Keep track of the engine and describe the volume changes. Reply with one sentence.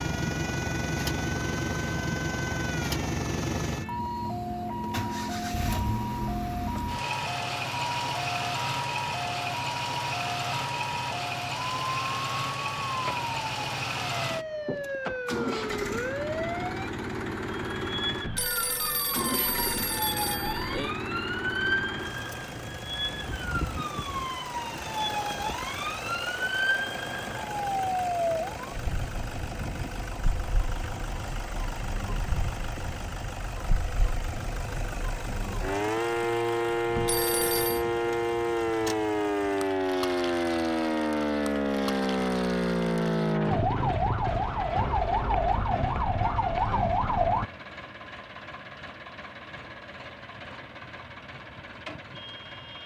The loudness of the engine goes down.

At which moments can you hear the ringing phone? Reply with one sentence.
You can hear the ringing phone from 18.2 to 20.9 s and from 37.0 to 37.9 s.